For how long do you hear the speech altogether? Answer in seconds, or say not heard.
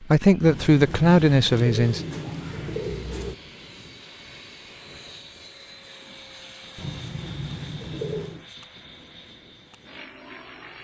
2 s.